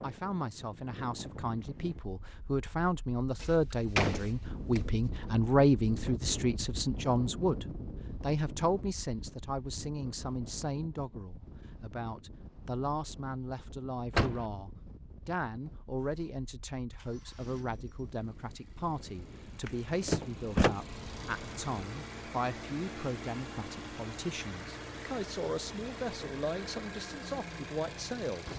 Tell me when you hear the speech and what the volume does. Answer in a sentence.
You can hear the speech from 0.0 to 28.5 s, getting quieter.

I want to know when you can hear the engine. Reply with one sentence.
You can hear the engine from 15.9 to 28.5 s.